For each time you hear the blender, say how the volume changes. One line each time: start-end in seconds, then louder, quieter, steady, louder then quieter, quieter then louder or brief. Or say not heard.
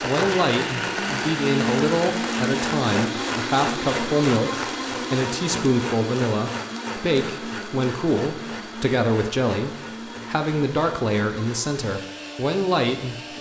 0.0-13.3 quieter.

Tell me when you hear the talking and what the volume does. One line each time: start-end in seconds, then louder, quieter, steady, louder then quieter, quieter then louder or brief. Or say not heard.
0.0-13.3 steady.